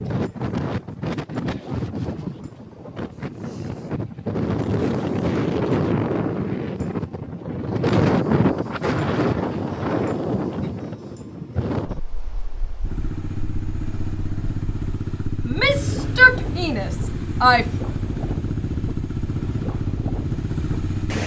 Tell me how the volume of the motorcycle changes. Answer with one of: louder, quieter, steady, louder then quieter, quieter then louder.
steady.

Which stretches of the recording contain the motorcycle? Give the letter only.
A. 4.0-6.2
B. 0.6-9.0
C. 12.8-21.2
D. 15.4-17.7
C.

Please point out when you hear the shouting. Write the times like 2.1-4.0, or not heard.
15.4-17.7.